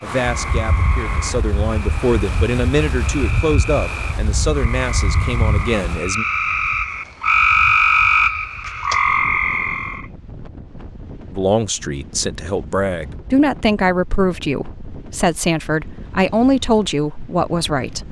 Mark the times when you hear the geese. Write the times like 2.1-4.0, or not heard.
not heard.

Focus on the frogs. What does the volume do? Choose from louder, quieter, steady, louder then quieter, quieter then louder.
louder.